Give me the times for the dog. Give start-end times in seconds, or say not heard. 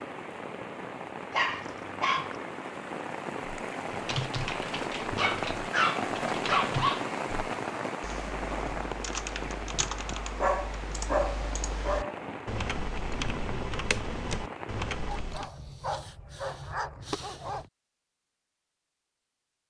1.3-2.4, 5.2-7.0, 10.3-12.2, 15.1-17.6.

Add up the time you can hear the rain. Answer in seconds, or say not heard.
15 s.